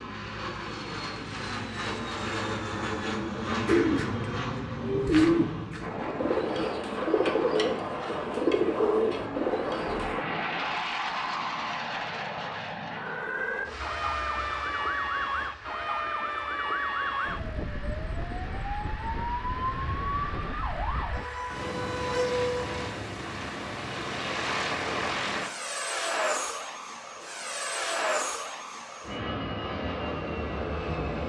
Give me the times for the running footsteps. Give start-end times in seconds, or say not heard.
not heard.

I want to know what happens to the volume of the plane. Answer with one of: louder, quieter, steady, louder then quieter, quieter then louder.
quieter then louder.